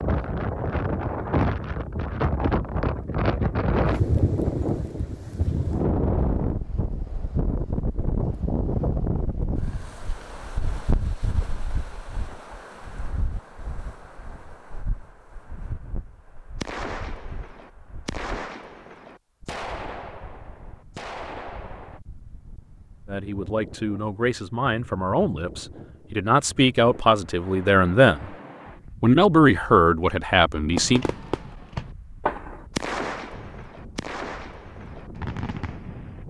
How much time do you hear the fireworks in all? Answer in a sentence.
You can hear the fireworks for 11 seconds altogether.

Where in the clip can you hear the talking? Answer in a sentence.
You can hear the talking from 23.1 to 28.3 s and from 29.0 to 31.1 s.